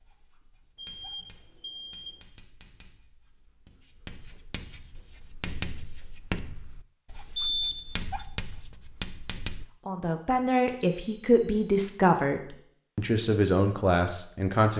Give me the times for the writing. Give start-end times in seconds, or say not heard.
0.0-9.7.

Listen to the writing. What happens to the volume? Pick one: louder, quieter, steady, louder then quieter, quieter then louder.
louder.